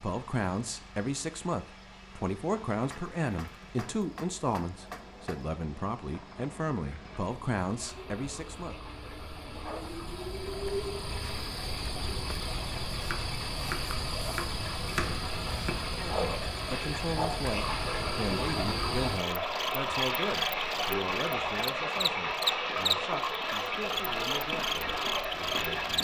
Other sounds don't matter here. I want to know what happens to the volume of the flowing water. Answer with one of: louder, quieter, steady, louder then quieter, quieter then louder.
louder.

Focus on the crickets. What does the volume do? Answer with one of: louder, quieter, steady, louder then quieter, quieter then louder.
louder.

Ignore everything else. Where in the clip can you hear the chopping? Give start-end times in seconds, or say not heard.
2.9-5.5, 13.0-15.8.